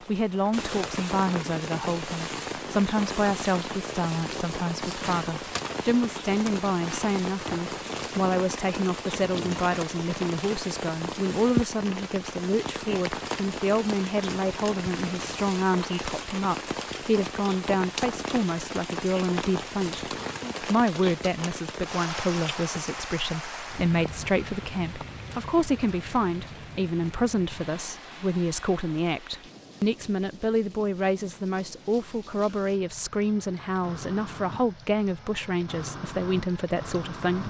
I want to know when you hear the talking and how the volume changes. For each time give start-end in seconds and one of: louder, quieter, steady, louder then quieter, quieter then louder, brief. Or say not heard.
0.1-37.4 steady.